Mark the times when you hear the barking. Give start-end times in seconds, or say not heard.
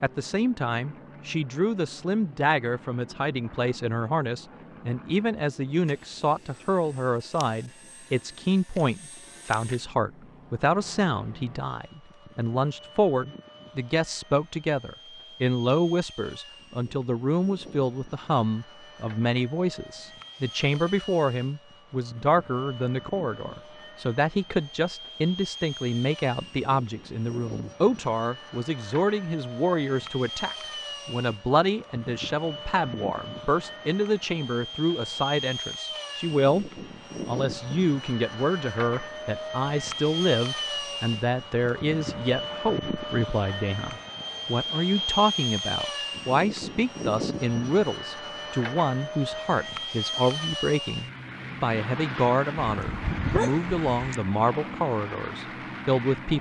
52.6-54.1.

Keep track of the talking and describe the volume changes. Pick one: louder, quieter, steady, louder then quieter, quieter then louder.
steady.